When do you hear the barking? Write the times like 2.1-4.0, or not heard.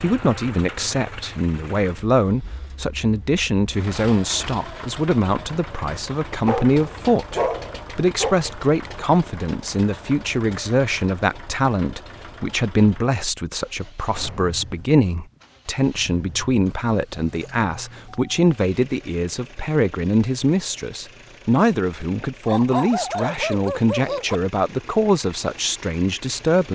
6.5-8.3, 22.4-24.4.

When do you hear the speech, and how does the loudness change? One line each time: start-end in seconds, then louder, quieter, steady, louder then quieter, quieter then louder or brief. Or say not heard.
0.0-26.7 steady.